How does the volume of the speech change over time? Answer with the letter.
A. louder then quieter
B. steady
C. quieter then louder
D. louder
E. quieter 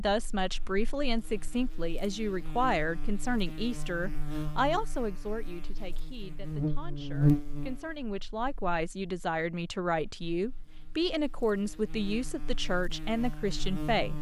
C.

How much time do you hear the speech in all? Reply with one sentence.
The speech can be heard for 14 seconds in total.